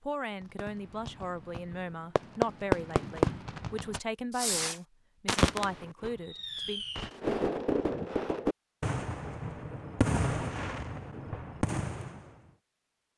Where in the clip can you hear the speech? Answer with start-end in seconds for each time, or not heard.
0.0-6.8.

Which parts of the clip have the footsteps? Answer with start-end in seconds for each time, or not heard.
not heard.